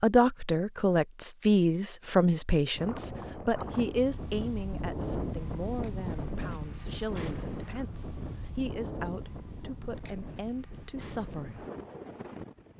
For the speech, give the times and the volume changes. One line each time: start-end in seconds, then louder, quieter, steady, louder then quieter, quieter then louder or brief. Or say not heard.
0.0-11.7 quieter.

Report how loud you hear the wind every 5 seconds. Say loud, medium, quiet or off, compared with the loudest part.
loud, loud, medium.